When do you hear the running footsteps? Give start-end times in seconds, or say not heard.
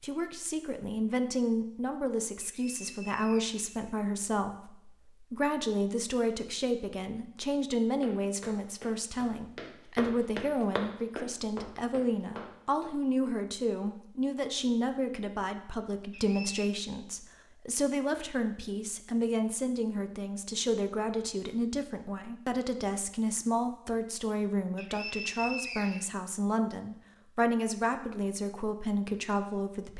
8.0-12.9.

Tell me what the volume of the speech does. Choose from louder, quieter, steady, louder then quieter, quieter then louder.
steady.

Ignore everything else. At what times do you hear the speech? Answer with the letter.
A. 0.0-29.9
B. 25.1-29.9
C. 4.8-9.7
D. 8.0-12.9
A.